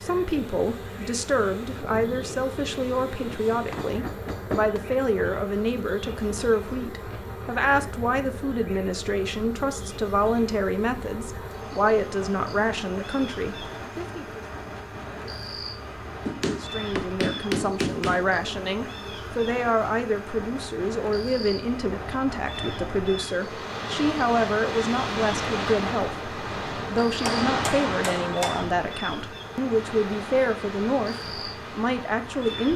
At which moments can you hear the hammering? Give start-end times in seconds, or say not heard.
3.1-4.8, 16.2-18.2, 26.9-28.7.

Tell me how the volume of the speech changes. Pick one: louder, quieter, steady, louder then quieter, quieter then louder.
steady.